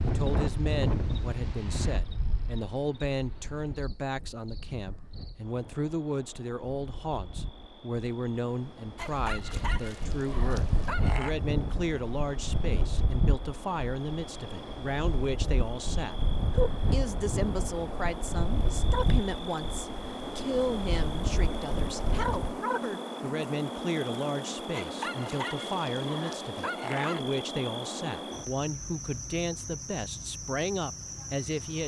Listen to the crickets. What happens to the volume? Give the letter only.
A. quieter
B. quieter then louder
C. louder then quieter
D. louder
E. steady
D.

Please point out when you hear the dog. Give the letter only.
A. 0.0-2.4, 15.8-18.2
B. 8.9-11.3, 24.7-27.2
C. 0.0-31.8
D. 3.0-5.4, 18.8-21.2
B.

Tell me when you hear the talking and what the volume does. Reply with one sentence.
You can hear the talking from 0.0 to 31.8 s, at a steady volume.